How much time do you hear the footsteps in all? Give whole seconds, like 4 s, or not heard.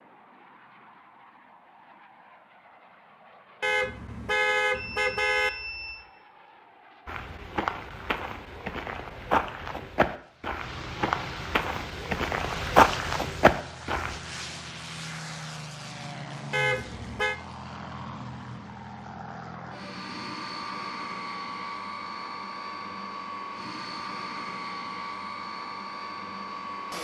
7 s.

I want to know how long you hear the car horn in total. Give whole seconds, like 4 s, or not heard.
3 s.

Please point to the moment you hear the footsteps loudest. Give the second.
13 s.